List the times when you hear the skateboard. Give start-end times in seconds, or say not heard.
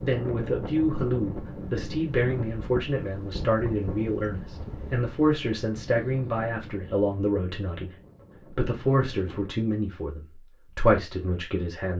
not heard.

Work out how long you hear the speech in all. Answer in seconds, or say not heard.
11 s.